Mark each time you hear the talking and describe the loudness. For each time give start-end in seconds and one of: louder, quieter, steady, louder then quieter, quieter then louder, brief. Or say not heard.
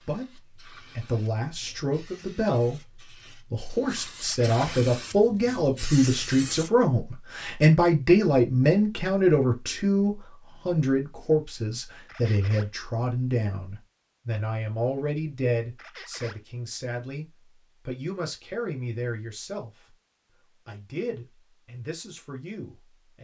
0.1-17.2 louder then quieter
17.9-19.7 brief
20.6-23.1 brief.